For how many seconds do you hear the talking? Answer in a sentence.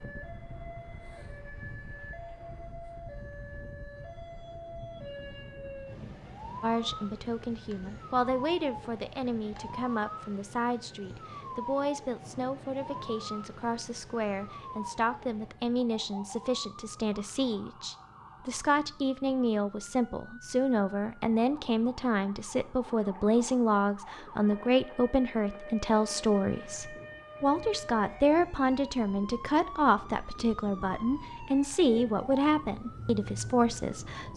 The talking can be heard for 28 seconds in total.